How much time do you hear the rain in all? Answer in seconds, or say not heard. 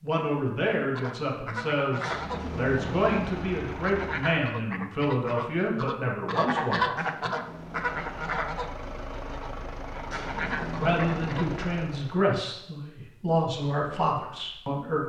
not heard.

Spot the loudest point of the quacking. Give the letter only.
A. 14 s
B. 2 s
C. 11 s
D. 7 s
D.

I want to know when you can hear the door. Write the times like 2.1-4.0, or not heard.
2.0-3.5, 6.9-8.3, 10.1-11.6.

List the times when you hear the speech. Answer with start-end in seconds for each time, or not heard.
0.0-7.3, 10.8-15.0.